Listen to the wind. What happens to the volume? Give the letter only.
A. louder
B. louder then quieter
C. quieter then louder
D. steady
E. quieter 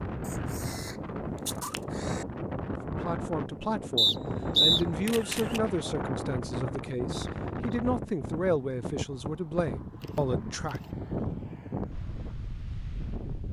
D.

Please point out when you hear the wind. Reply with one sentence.
You can hear the wind from 0.0 to 13.4 s.